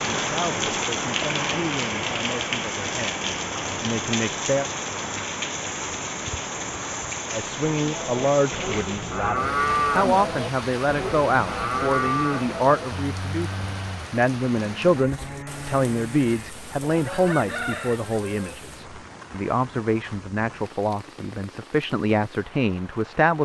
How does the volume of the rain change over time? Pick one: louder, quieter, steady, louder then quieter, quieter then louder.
quieter.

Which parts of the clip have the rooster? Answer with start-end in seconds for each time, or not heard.
16.9-18.6.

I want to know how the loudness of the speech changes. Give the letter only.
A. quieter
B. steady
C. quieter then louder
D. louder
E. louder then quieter
D.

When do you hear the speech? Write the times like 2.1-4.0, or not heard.
0.0-4.7, 7.3-23.3.